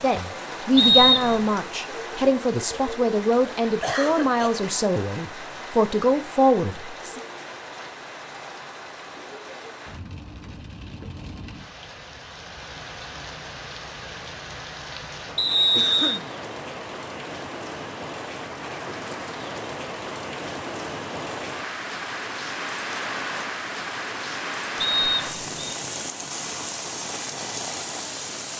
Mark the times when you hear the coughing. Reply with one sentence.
You can hear the coughing from 3.8 to 4.7 s and from 15.8 to 16.3 s.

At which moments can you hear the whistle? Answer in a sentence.
You can hear the whistle from 0.8 to 1.4 s, from 15.3 to 16.2 s and from 24.8 to 25.7 s.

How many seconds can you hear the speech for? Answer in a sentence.
You can hear the speech for 7 seconds altogether.